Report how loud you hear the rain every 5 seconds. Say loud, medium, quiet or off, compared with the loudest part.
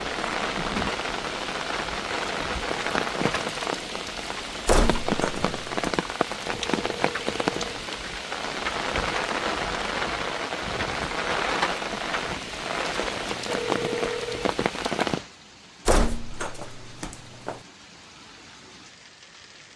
loud, loud, loud, medium.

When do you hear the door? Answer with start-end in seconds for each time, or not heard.
4.7-5.8, 15.8-17.6.